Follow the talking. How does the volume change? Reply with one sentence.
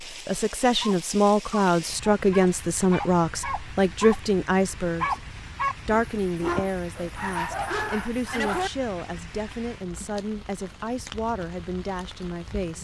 The loudness of the talking goes down.